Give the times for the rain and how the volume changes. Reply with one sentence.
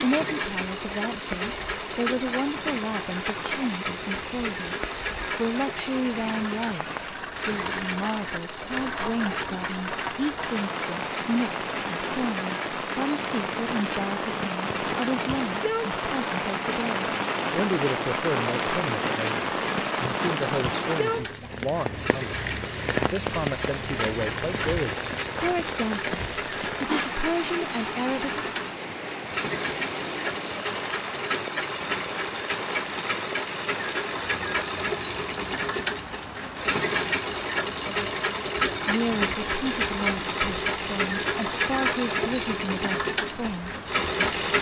You can hear the rain from 0.0 to 44.5 s, getting louder then quieter.